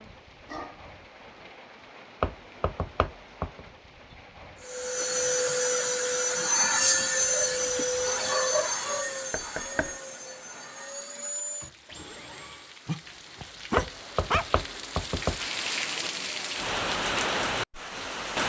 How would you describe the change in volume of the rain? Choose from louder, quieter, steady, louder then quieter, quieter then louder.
louder.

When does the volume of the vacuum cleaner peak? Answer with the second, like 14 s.
7 s.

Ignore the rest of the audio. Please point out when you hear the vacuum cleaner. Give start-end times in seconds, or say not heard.
4.7-12.8.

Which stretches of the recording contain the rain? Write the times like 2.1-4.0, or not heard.
0.0-18.4.